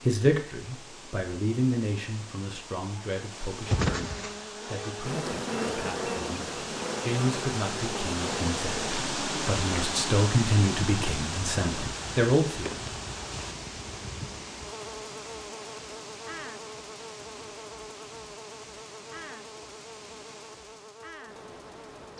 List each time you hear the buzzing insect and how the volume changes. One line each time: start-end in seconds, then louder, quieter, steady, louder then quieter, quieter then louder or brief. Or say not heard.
3.6-22.1 quieter.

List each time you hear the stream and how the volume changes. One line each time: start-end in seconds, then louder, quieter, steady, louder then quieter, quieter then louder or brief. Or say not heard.
0.0-22.1 louder then quieter.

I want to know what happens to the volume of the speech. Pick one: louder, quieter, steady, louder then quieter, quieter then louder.
quieter then louder.